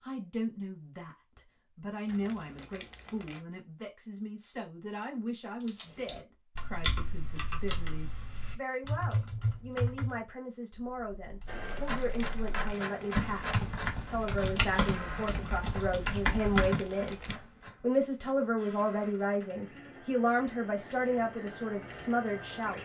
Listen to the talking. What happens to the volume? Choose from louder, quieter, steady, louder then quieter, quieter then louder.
louder.